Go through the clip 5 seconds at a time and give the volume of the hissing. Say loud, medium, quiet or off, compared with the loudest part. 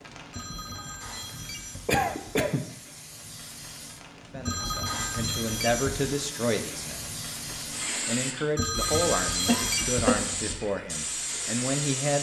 medium, loud, loud.